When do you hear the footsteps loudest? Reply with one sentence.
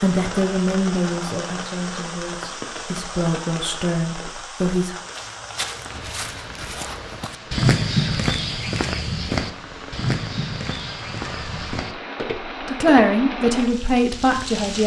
The loudest moment of the footsteps is at 8 seconds.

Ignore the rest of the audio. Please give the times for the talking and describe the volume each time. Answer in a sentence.
You can hear the talking from 0.0 to 5.0 s, getting quieter then louder; and briefly from 12.6 to 14.8 s.